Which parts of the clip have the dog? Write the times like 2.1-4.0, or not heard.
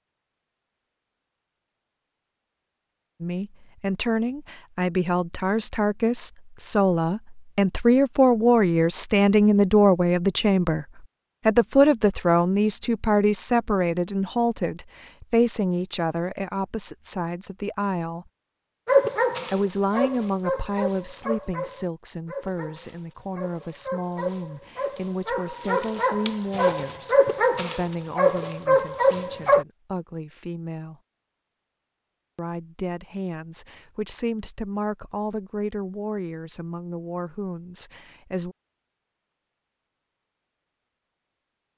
18.9-29.6.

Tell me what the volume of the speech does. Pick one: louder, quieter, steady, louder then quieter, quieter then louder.
quieter.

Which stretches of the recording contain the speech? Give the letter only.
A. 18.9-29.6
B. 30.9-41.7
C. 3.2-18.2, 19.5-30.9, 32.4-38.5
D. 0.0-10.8
C.